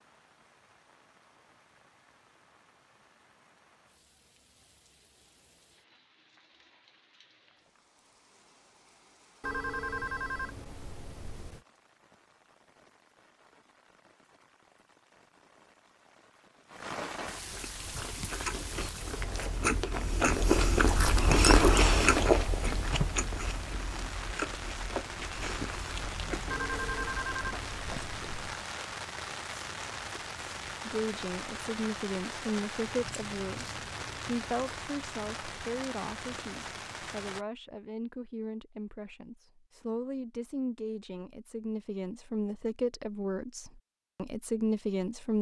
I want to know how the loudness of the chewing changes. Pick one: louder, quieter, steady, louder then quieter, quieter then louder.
louder then quieter.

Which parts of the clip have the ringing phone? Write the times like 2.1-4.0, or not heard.
9.4-11.6, 26.4-28.6.